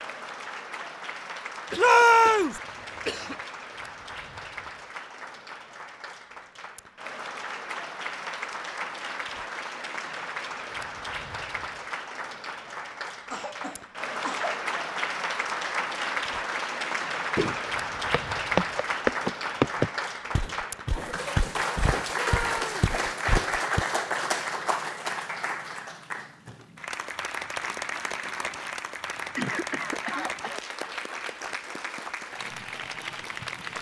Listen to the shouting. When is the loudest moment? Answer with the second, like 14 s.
2 s.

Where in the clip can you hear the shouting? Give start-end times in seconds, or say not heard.
1.8-2.6, 22.1-22.8.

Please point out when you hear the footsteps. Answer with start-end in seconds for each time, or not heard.
17.4-23.9.